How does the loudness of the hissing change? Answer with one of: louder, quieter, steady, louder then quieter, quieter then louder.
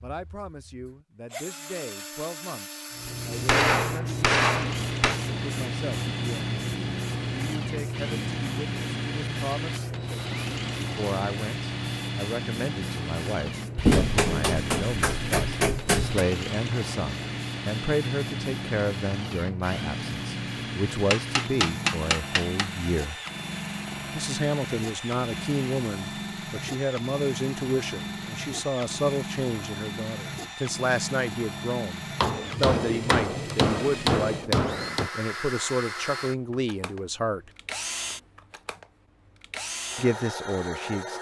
quieter.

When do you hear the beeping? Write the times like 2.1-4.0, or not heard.
not heard.